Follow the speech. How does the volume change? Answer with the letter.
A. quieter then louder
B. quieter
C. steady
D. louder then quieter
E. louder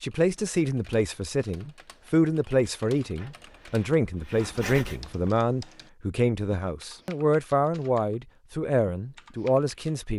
C.